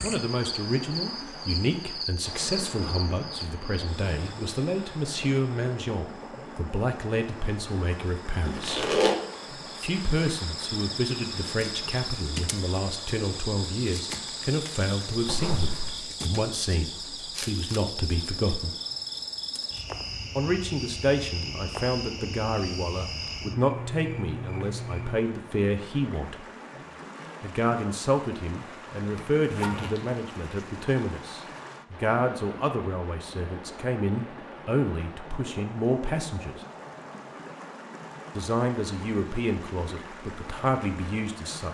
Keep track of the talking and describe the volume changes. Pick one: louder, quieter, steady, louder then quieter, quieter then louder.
steady.